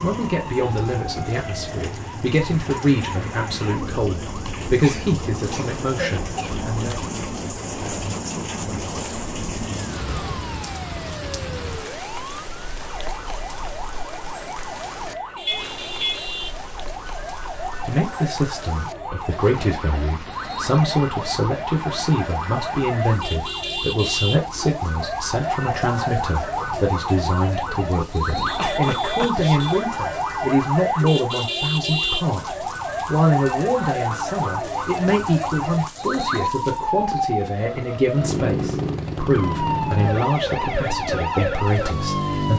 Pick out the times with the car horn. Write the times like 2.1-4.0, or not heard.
15.4-16.2, 28.3-29.9.